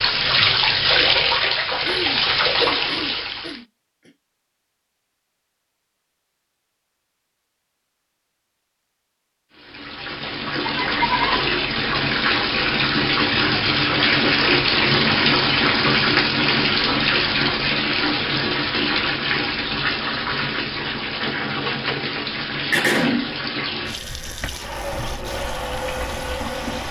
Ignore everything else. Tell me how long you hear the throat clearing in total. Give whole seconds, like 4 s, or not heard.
4 s.